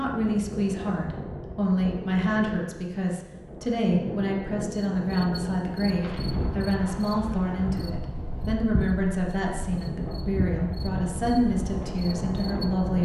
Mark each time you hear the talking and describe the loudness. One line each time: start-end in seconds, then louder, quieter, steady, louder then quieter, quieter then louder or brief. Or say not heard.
0.0-13.0 steady.